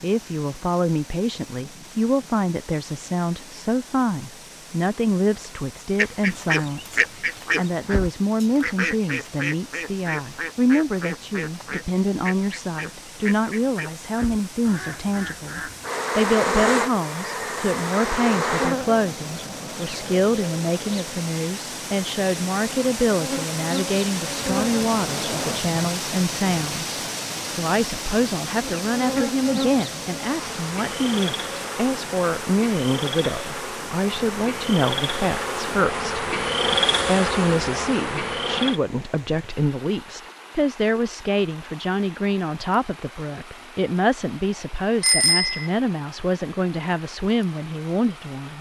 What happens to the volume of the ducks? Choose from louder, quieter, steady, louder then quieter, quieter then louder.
quieter.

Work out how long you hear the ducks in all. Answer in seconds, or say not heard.
10 s.